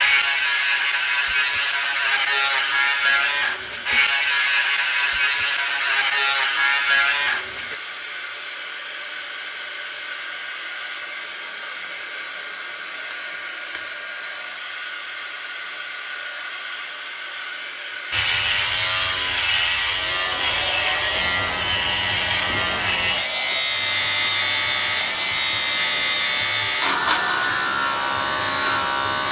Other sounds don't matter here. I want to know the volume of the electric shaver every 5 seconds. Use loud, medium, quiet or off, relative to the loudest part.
loud, loud, off, loud, loud, loud.